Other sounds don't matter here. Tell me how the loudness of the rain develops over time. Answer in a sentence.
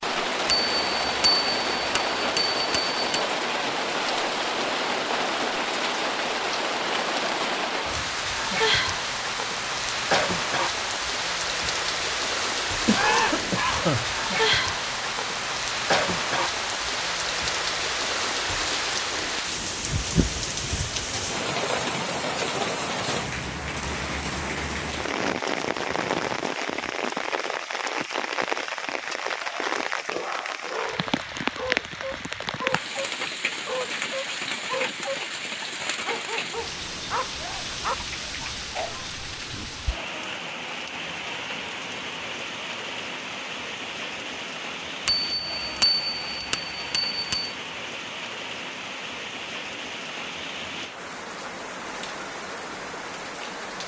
The loudness of the rain goes down.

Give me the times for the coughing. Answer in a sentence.
You can hear the coughing from 12.8 to 14.1 s.